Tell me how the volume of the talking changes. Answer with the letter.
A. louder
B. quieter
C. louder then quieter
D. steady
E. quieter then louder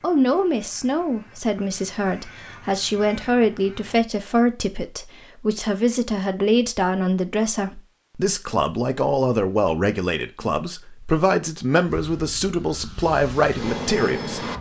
D.